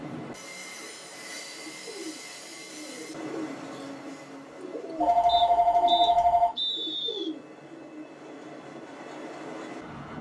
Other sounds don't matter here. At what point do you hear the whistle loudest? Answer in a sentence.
The loudest moment of the whistle is at 7 seconds.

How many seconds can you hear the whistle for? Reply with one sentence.
The whistle can be heard for 2 seconds in total.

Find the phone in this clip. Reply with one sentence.
You can hear the phone from 5.0 to 6.5 s.